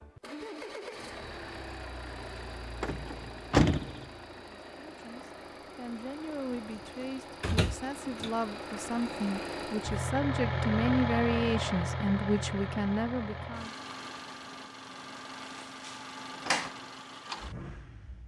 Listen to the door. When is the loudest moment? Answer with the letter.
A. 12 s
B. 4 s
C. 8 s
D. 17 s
B.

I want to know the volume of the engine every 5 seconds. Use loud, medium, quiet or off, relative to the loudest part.
medium, medium, loud, medium.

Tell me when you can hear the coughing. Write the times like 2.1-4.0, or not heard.
not heard.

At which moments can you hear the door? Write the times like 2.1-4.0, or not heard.
2.8-4.0, 6.8-8.3, 15.6-16.7.